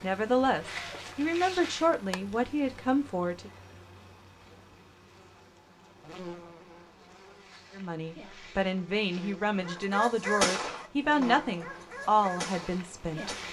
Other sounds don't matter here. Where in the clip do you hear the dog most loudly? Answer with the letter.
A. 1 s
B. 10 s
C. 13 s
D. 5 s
B.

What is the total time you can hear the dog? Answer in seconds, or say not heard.
4 s.